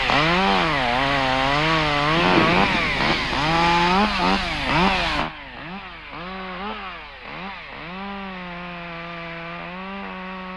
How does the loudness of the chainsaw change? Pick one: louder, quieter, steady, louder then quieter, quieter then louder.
quieter.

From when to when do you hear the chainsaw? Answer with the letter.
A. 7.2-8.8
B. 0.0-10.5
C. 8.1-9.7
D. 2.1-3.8
B.